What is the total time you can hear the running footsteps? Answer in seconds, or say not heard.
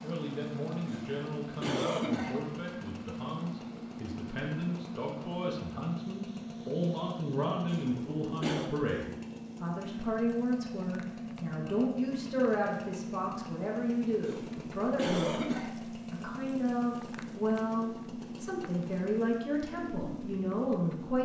not heard.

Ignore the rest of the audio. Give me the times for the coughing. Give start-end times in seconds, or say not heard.
0.8-2.4, 7.7-8.7, 14.2-15.7.